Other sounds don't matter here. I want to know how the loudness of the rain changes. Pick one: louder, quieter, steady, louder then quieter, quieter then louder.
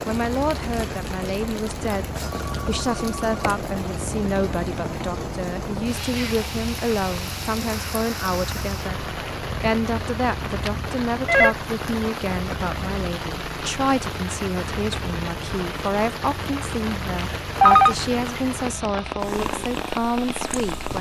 steady.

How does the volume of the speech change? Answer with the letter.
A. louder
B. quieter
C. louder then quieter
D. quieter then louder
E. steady
E.